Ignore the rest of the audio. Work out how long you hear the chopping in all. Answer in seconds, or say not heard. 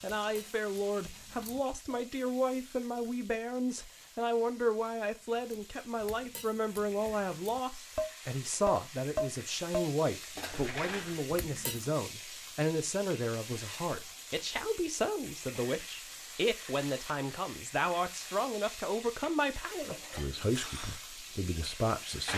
not heard.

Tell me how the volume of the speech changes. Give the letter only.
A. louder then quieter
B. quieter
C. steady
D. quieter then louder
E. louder
C.